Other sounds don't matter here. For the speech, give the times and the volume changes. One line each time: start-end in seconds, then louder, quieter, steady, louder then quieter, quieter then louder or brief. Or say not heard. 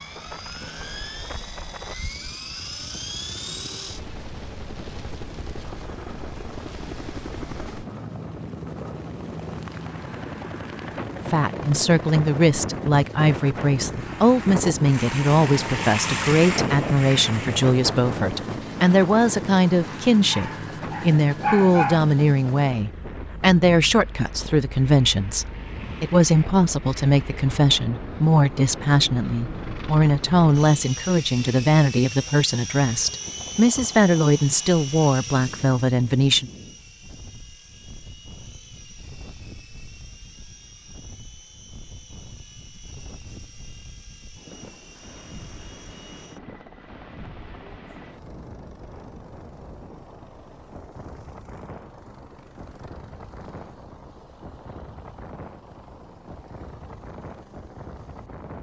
11.3-36.5 steady.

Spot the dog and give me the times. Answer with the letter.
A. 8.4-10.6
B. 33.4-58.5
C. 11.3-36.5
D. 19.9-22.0
D.